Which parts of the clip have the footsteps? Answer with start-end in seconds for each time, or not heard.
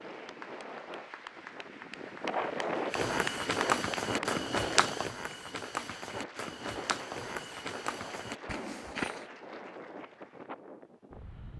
2.9-9.2.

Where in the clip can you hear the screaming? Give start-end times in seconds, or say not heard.
not heard.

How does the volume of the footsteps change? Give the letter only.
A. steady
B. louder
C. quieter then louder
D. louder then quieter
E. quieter
E.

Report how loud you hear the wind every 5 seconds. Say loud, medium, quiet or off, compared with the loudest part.
loud, medium, medium.